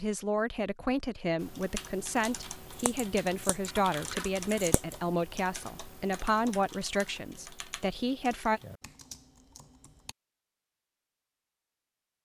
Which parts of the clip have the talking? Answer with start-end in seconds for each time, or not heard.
0.0-8.6.